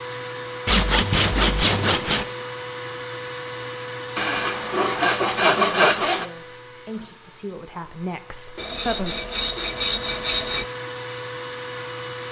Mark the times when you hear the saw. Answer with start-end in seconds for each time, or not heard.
0.7-2.3, 4.2-6.2, 8.6-10.7.